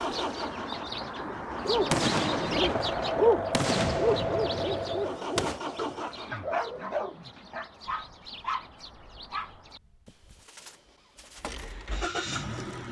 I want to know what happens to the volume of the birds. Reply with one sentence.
The volume of the birds goes down.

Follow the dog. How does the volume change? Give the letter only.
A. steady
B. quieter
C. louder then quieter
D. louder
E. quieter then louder
B.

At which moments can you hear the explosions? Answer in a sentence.
The explosions can be heard from 1.9 to 5.6 s.